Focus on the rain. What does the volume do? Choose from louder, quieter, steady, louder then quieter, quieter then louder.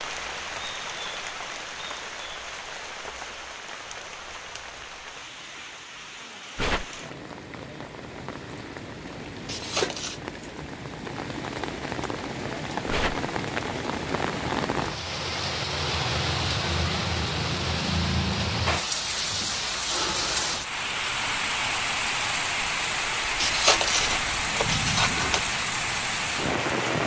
louder.